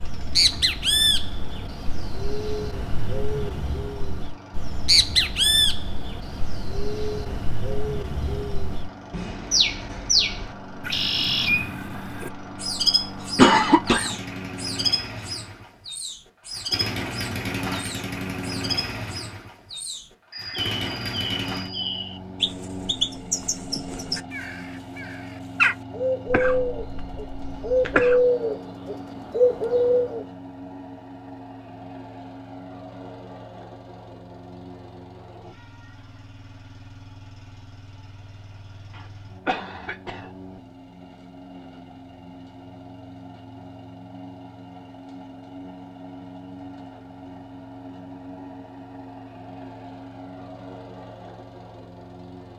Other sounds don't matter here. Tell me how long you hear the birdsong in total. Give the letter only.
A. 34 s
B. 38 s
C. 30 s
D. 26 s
C.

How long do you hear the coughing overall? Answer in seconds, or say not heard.
4 s.